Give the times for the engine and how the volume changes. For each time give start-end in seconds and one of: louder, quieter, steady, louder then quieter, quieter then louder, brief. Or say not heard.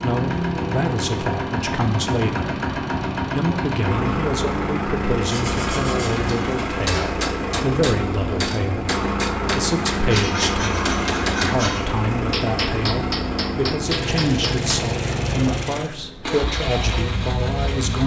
0.0-18.0 steady.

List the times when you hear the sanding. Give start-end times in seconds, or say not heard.
5.3-7.2, 10.1-11.8.